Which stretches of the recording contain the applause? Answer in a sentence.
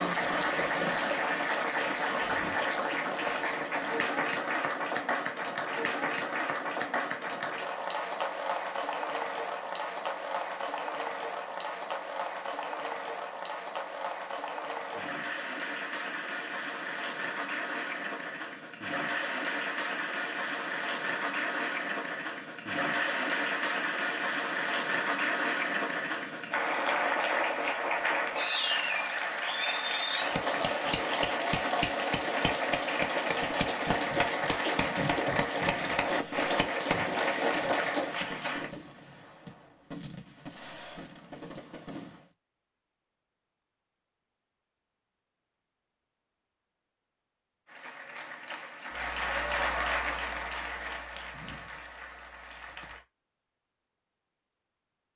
You can hear the applause from 0.0 to 38.7 s and from 47.6 to 53.0 s.